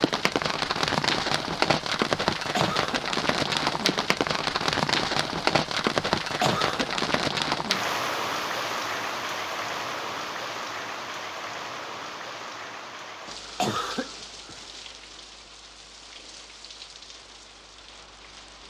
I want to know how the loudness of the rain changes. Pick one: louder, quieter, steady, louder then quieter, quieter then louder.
quieter.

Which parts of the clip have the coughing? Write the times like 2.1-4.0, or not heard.
2.5-3.0, 6.4-6.9, 13.6-14.6.